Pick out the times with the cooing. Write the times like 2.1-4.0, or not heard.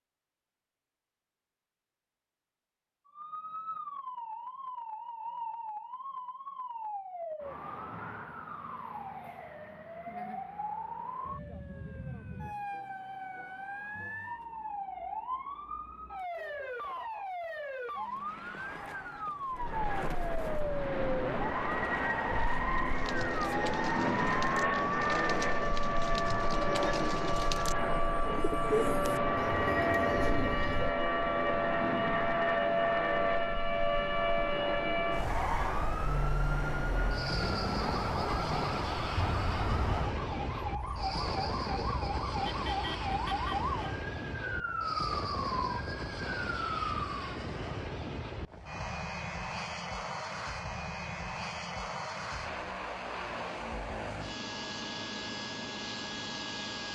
22.9-30.9.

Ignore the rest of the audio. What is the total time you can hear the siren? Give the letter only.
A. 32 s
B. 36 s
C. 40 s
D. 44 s
D.